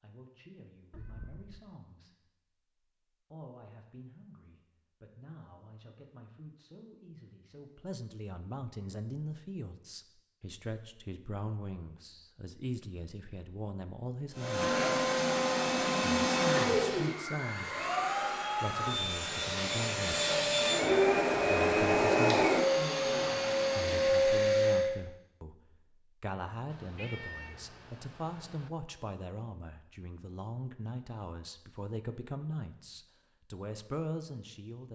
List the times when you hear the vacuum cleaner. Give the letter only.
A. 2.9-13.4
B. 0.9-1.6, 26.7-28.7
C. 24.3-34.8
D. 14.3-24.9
D.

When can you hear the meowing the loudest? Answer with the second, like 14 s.
27 s.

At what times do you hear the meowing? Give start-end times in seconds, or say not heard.
0.9-1.6, 26.7-28.7.